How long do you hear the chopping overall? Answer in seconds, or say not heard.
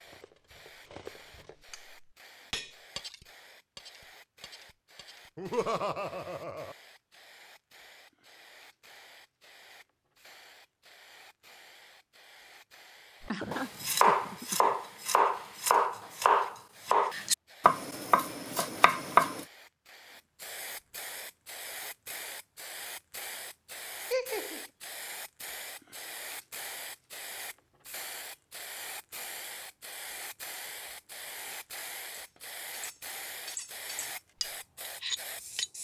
6 s.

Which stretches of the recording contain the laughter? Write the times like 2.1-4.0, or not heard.
5.3-6.8, 13.3-14.8, 24.1-24.6.